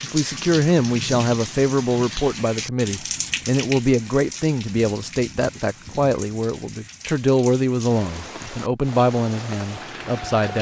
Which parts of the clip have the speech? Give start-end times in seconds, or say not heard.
0.0-10.5.